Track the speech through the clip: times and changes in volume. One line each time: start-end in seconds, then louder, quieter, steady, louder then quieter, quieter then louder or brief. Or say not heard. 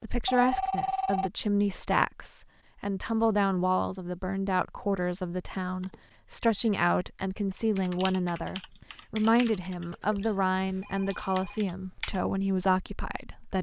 0.0-13.5 steady.